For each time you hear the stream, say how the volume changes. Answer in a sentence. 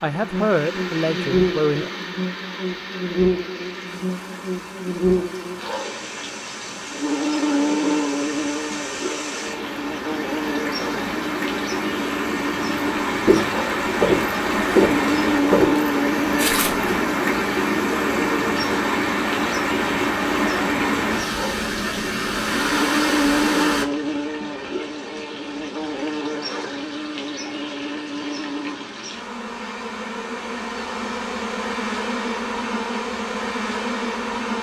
The stream can be heard from 0.0 to 23.9 s, getting louder.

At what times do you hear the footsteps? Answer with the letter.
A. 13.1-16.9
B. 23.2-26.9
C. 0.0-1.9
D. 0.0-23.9
A.